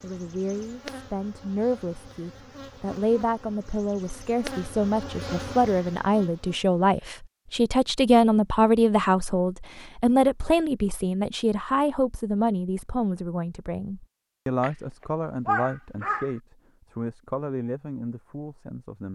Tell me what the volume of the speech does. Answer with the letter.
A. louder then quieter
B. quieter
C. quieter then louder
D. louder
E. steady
A.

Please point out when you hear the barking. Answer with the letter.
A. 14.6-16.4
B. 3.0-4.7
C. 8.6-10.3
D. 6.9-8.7
A.